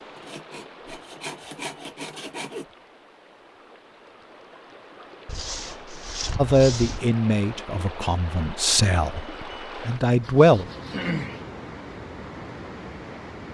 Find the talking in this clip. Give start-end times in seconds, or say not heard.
6.3-10.7.